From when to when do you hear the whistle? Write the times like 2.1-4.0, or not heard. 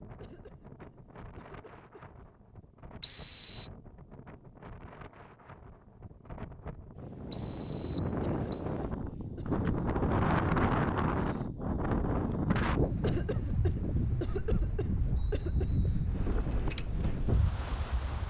3.0-3.7, 7.3-8.7, 15.2-16.1.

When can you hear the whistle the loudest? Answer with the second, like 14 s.
3 s.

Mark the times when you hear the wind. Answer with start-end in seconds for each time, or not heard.
0.0-18.2.